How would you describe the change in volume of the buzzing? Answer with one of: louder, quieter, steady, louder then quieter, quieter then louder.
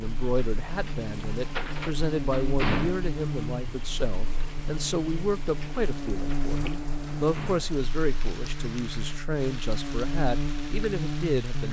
steady.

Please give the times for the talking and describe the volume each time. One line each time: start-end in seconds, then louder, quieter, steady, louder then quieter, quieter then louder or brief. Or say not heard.
0.0-11.6 steady.